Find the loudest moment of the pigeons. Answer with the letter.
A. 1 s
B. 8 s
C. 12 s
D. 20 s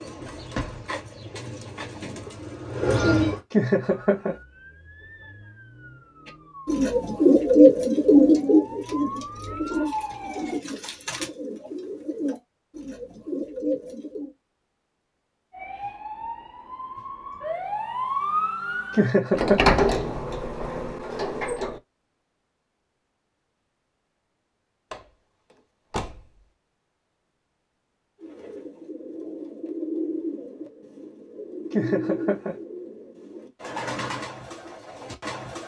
B.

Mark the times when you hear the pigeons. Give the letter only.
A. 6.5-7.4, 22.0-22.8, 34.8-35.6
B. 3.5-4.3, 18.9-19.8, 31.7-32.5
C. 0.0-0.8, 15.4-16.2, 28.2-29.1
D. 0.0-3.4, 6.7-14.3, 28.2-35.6
D.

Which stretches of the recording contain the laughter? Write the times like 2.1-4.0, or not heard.
3.5-4.3, 18.9-19.8, 31.7-32.5.